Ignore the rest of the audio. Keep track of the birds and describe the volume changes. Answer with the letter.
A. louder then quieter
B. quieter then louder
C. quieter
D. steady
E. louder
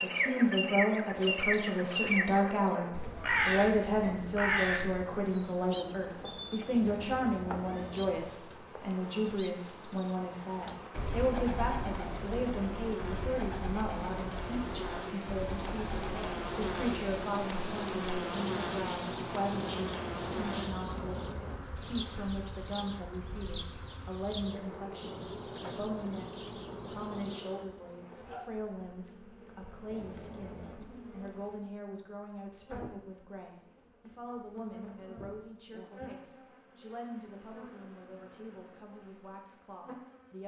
C.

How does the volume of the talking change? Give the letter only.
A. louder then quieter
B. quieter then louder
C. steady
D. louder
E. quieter
E.